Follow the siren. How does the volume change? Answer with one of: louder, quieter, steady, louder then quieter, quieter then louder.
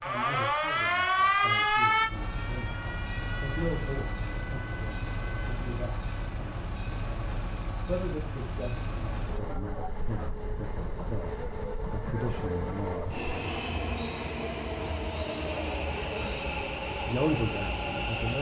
quieter.